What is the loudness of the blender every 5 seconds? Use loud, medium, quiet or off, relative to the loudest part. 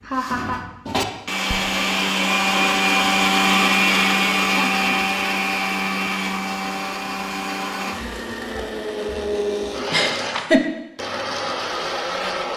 loud, medium, medium.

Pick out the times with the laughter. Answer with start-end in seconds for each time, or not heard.
0.0-0.7, 4.5-5.0, 9.9-10.6.